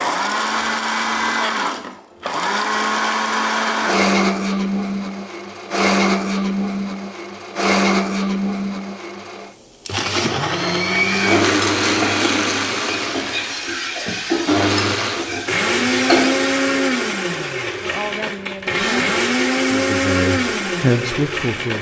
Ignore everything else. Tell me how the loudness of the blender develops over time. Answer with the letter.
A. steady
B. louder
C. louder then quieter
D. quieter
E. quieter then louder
A.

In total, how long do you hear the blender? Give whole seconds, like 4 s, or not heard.
22 s.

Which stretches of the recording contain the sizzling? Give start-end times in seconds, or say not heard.
10.9-16.6.